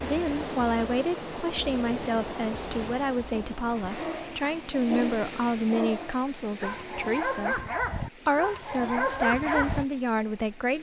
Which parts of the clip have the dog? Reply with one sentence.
You can hear the dog from 3.3 to 9.8 s.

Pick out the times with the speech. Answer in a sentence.
You can hear the speech from 0.0 to 10.7 s.